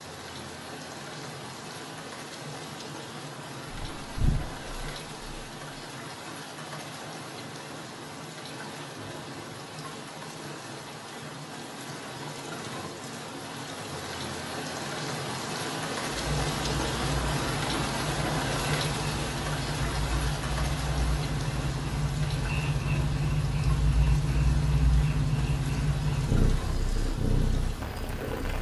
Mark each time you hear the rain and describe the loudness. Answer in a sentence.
You can hear the rain from 0.0 to 28.5 s, getting louder then quieter.